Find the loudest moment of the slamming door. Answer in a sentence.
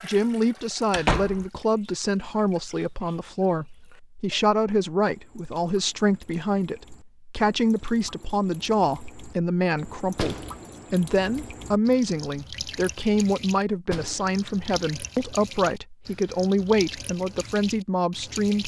The loudest moment of the slamming door is at 1 second.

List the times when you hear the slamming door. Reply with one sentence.
The slamming door can be heard from 0.9 to 1.4 s, from 10.1 to 10.7 s and from 13.8 to 14.4 s.